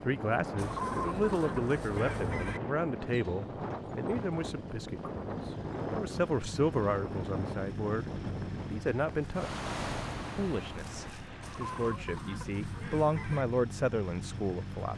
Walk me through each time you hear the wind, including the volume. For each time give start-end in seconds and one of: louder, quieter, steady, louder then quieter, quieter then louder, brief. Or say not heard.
0.0-11.2 steady.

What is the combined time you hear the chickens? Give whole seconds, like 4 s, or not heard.
4 s.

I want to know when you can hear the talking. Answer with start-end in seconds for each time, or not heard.
0.0-9.6, 10.3-14.9.